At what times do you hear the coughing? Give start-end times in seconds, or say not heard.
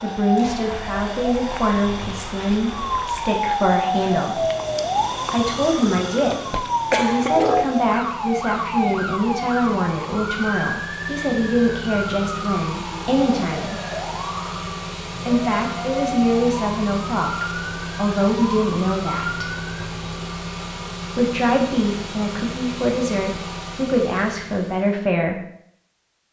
6.5-7.5.